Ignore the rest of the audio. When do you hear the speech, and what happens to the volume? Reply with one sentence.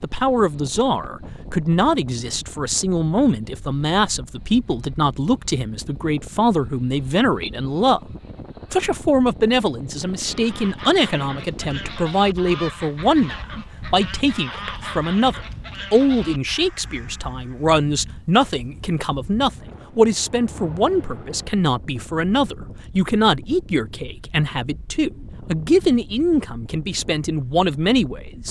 You can hear the speech from 0.0 to 8.0 s, at a steady volume; and from 8.7 to 28.4 s, at a steady volume.